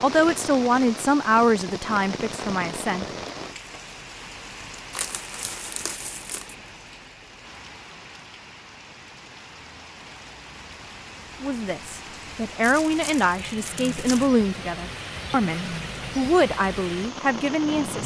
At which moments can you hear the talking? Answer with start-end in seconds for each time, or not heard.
0.0-3.0, 11.4-18.0.